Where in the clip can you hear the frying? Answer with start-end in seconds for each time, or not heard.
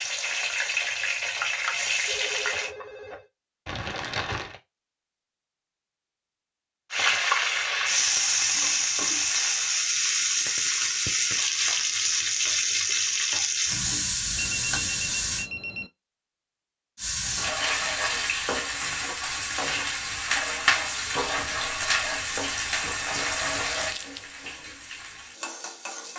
0.0-2.7, 6.9-15.4, 16.9-26.1.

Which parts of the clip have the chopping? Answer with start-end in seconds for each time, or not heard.
not heard.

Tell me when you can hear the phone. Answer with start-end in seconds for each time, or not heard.
2.0-3.3, 14.3-15.9.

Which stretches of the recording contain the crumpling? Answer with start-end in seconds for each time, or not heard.
3.6-4.6, 23.8-24.2.